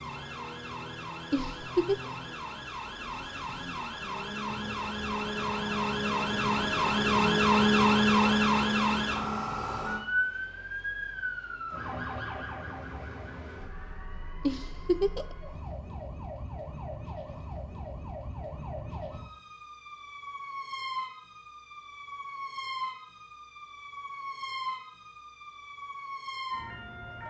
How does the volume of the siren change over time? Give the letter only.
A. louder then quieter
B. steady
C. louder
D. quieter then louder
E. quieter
A.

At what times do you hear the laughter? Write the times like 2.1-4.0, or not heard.
1.3-2.0, 14.4-15.3.